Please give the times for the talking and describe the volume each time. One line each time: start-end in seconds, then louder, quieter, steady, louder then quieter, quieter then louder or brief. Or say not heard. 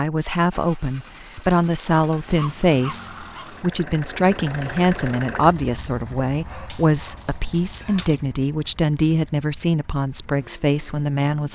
0.0-11.5 steady.